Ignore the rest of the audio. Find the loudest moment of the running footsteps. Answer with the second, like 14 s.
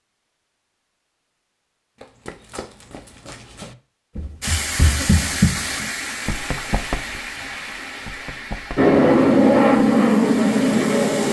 5 s.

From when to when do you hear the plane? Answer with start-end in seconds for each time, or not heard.
8.8-11.2.